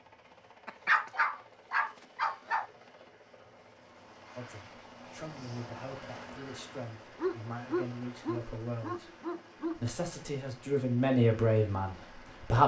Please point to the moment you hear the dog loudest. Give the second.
1 s.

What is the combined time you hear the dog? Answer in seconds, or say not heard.
5 s.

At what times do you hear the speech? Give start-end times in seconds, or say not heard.
4.3-9.1, 9.8-12.6.